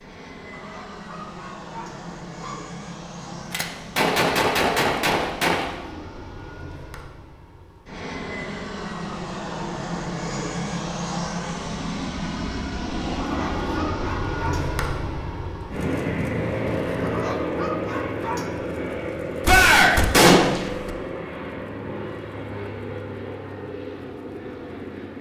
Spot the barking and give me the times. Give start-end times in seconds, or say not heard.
0.5-2.7, 13.2-14.8, 17.0-18.5.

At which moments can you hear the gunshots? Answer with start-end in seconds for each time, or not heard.
3.4-5.8, 19.4-20.9.